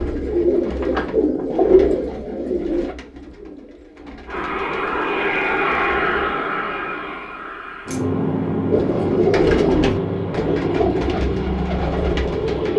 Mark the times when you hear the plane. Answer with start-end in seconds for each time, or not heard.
4.2-12.7.